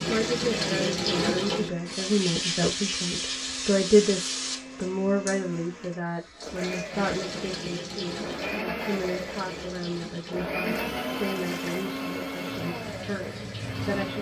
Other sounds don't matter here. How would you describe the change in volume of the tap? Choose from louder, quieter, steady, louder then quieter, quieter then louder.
quieter.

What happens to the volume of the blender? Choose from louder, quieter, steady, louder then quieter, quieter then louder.
louder.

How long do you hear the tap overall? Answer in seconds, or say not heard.
14 s.